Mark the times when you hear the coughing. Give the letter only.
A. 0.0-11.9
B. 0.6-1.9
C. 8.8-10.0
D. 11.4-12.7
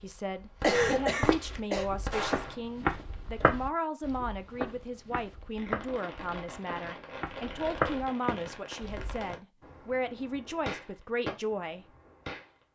B.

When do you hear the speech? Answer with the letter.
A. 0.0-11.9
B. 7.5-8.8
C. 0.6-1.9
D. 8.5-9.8
A.